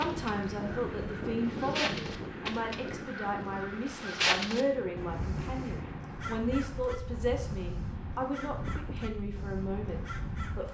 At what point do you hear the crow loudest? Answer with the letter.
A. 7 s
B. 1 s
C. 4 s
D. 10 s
C.